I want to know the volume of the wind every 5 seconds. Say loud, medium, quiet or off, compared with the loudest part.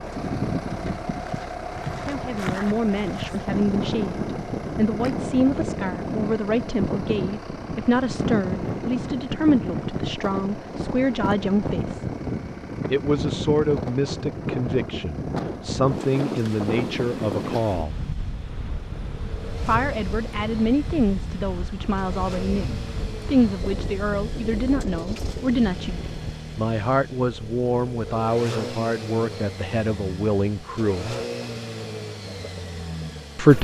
loud, loud, loud, loud, medium, medium, off.